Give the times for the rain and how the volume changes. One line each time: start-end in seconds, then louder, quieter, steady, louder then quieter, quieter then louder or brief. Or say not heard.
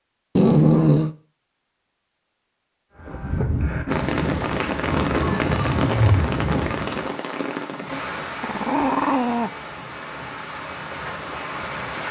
3.9-12.0 quieter.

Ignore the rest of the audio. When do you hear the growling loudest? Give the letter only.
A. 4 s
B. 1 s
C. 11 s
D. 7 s
B.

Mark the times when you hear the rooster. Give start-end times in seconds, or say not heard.
not heard.